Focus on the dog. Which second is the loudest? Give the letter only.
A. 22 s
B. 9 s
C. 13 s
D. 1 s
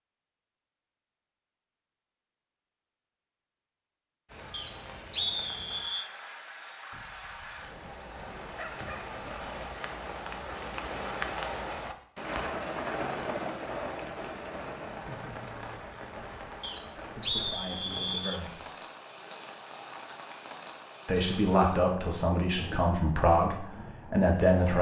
B.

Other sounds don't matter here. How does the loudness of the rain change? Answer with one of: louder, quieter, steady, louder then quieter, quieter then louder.
louder then quieter.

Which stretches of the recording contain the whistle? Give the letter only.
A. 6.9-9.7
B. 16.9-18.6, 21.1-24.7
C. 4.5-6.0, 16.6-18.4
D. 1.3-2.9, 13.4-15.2
C.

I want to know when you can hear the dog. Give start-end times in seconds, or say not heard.
6.9-9.7.